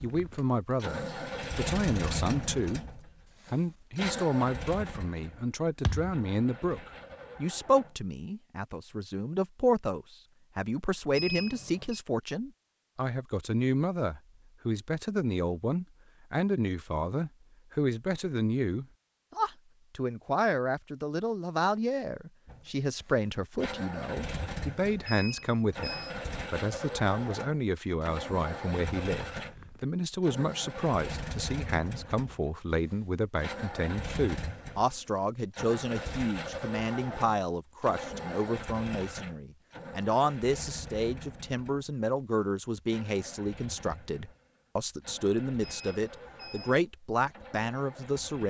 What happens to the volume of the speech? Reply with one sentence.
The volume of the speech stays about the same.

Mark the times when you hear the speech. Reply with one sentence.
The speech can be heard from 0.0 to 48.4 s.